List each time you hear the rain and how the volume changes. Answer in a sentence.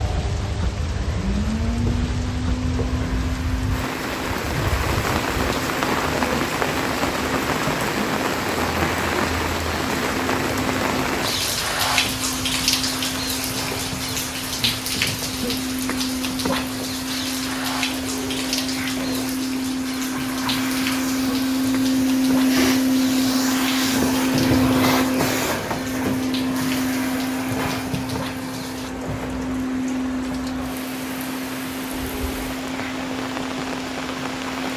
You can hear the rain from 0.0 to 34.7 s, getting quieter.